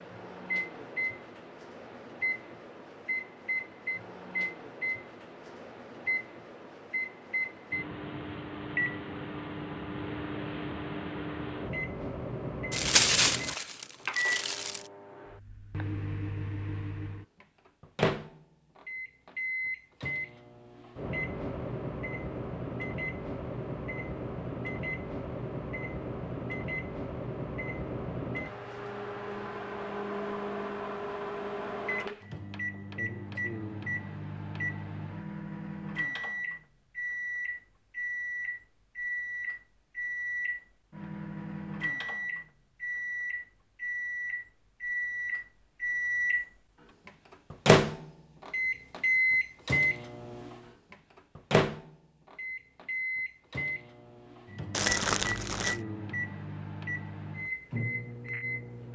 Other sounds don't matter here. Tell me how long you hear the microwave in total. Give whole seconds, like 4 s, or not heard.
59 s.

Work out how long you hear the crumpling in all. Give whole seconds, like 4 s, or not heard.
3 s.